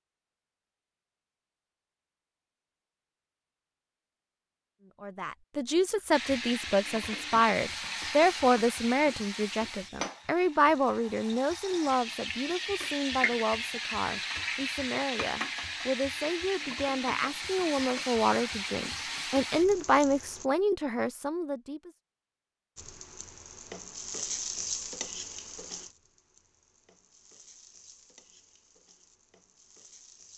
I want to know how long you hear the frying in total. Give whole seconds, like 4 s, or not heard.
22 s.